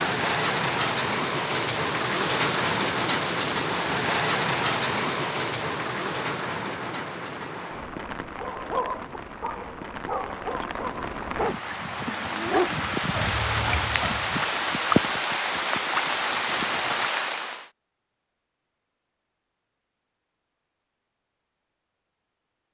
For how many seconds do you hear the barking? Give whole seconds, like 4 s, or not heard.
6 s.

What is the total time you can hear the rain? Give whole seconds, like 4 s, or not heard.
18 s.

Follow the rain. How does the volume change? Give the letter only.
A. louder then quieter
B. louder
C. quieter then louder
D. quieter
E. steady
C.